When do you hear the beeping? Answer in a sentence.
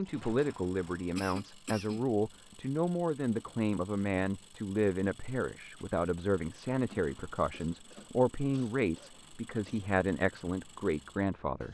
The beeping can't be heard in this clip.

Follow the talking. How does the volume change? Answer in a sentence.
The volume of the talking stays about the same.